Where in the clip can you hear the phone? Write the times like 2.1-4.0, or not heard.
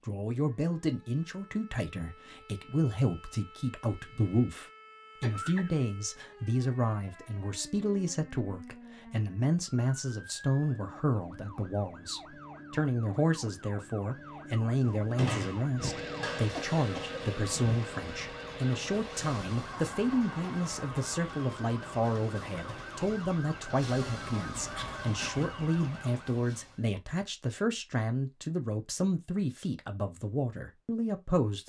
not heard.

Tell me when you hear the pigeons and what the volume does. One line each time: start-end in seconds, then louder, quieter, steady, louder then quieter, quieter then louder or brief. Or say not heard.
not heard.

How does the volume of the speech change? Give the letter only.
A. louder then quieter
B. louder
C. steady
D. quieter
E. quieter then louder
C.